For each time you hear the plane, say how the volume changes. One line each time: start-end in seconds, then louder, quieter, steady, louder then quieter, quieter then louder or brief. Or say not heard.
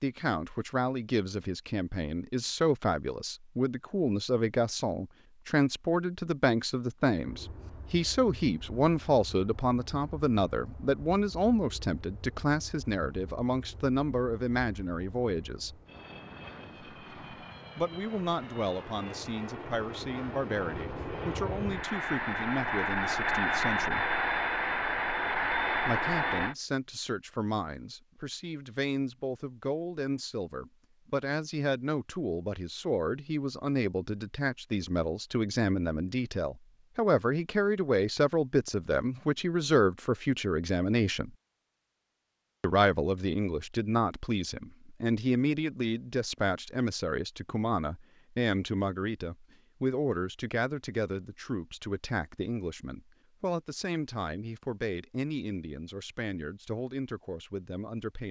7.2-26.6 louder.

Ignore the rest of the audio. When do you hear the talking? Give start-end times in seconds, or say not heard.
0.0-15.8, 17.8-24.1, 25.9-41.3, 42.6-58.2.